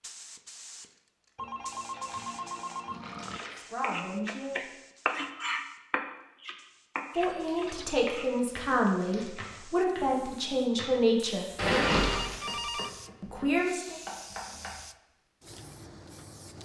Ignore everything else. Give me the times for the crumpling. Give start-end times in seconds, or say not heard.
1.9-3.8, 7.3-9.6, 11.6-12.4.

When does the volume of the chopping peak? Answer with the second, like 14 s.
5 s.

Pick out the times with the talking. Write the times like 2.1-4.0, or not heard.
3.6-4.7, 7.2-11.4, 13.2-13.9.